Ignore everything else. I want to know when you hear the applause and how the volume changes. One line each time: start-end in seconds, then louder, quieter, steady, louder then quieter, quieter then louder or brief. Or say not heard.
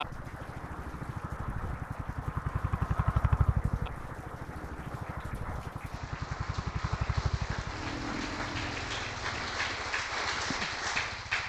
0.0-11.4 louder.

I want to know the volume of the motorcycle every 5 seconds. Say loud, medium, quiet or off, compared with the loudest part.
loud, loud, quiet.